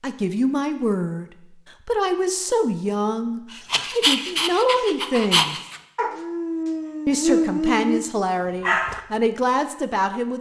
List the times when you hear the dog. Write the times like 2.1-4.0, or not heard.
3.5-8.0, 8.6-9.0.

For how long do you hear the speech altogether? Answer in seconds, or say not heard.
9 s.